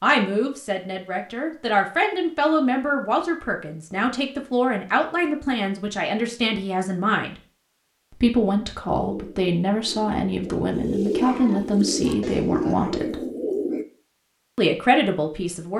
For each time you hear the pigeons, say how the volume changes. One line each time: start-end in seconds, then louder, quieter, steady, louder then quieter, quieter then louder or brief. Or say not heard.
8.9-13.8 louder.